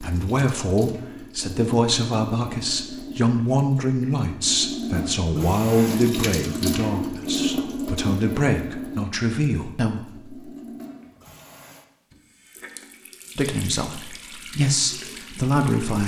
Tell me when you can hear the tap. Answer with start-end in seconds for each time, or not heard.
0.0-16.0.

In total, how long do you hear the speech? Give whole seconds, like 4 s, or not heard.
13 s.